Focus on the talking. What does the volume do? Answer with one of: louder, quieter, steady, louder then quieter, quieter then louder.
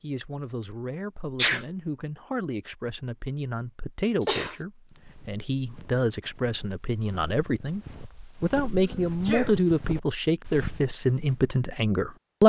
louder.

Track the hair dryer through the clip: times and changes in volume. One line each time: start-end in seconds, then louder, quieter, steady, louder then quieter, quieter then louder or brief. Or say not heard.
not heard.